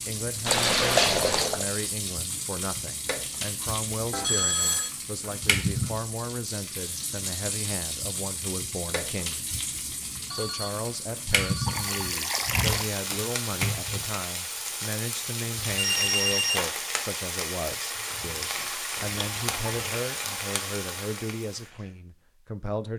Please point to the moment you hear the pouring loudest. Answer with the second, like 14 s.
1 s.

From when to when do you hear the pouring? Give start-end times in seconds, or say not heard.
0.5-1.6, 11.7-12.9, 18.9-19.8.